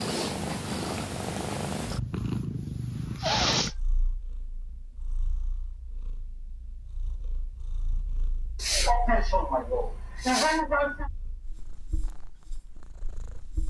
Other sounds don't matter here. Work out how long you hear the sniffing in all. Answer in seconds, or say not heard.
3 s.